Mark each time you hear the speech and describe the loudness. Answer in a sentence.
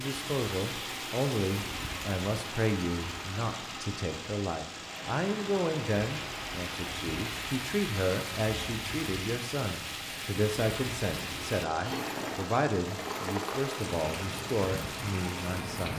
You can hear the speech from 0.0 to 15.9 s, at a steady volume.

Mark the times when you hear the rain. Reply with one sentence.
You can hear the rain from 0.0 to 15.9 s.